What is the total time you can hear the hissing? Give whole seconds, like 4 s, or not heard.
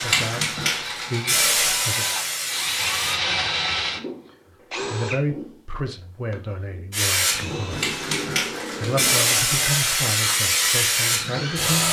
8 s.